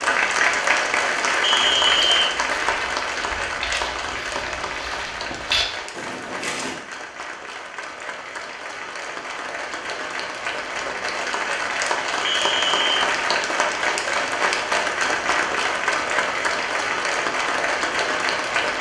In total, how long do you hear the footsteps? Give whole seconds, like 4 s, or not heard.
5 s.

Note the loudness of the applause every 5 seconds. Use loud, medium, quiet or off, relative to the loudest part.
loud, medium, loud, loud.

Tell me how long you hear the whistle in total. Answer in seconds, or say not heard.
2 s.